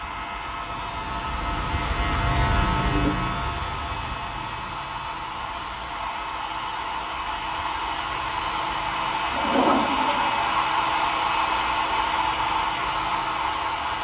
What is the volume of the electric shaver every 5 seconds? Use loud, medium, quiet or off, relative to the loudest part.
loud, quiet, quiet.